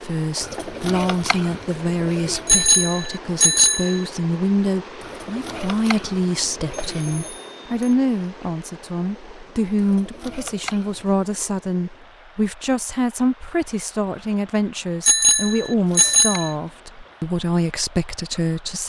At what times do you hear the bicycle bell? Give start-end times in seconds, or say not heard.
2.5-4.0, 6.9-8.0, 15.0-16.5.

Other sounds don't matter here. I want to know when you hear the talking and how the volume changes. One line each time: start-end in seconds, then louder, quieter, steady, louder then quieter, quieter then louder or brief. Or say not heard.
0.0-18.8 steady.